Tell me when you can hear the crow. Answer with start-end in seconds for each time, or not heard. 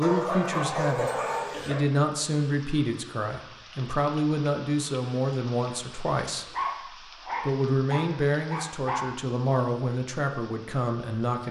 not heard.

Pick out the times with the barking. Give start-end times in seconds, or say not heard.
0.0-1.8, 6.5-9.1.